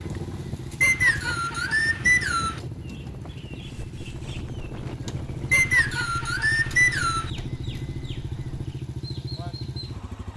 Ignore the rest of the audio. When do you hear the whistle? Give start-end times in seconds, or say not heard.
0.8-2.6, 5.5-7.3.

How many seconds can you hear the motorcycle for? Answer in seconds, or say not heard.
10 s.